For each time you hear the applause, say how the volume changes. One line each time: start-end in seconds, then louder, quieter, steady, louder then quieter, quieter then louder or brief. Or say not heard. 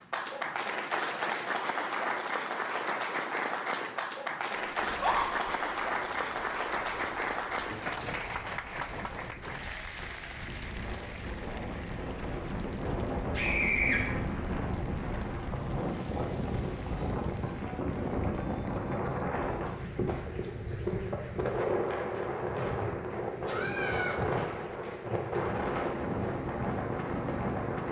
0.0-27.8 quieter.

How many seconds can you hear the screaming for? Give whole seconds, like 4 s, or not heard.
2 s.